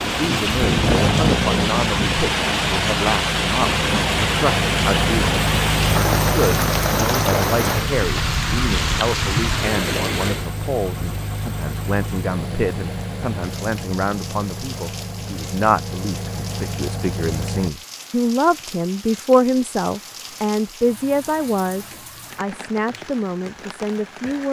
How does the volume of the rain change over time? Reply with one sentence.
The loudness of the rain goes down.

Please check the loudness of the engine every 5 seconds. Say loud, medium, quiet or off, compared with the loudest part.
loud, loud, medium, medium, off.